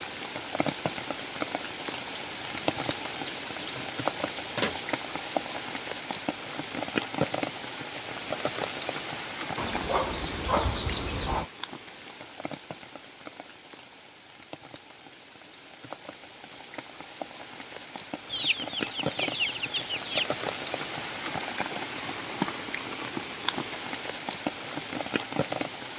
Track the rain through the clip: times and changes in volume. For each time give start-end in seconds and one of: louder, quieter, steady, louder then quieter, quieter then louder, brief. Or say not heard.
0.0-25.9 quieter then louder.